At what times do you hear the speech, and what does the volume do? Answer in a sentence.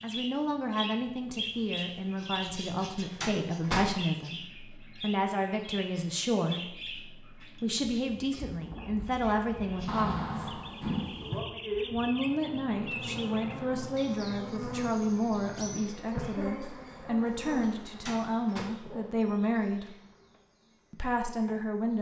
You can hear the speech from 0.0 to 10.6 s, at a steady volume; from 11.9 to 19.9 s, at a steady volume; and briefly from 20.9 to 21.9 s.